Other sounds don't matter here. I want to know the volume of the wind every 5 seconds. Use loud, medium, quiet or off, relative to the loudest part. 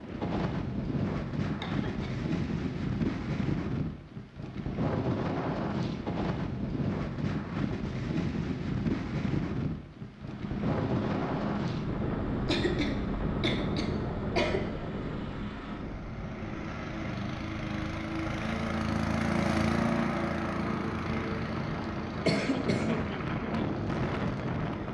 loud, loud, loud, medium, loud.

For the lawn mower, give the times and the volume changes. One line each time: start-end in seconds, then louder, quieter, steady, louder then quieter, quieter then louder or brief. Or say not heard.
10.1-24.8 louder then quieter.